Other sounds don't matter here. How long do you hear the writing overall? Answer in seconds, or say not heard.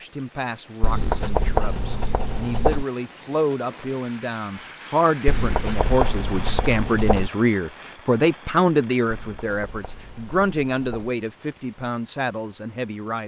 6 s.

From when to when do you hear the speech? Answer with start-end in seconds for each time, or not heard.
0.0-13.2.